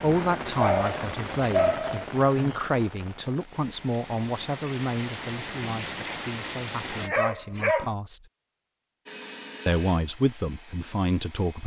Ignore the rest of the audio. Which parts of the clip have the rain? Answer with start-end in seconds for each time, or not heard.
0.0-7.1.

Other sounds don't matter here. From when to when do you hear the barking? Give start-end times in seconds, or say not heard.
0.6-2.5, 6.8-8.0.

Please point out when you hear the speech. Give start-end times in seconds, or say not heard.
0.0-8.2, 9.7-11.6.